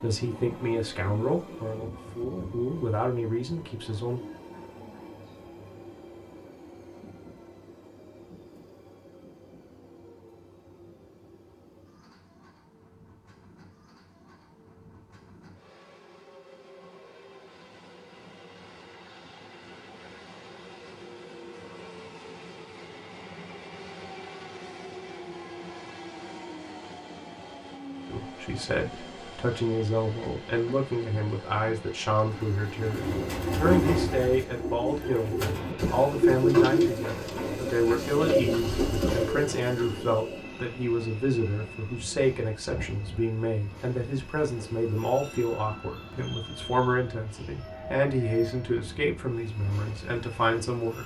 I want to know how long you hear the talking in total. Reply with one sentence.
You can hear the talking for 27 seconds altogether.